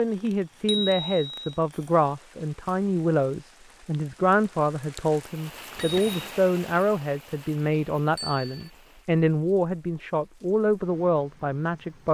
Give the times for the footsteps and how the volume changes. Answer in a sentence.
The footsteps can't be heard in this clip.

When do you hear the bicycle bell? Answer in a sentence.
The bicycle bell can be heard from 0.7 to 1.3 s, from 5.8 to 6.3 s and from 8.2 to 8.7 s.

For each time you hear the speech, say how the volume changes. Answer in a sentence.
The speech can be heard from 0.0 to 12.0 s, at a steady volume.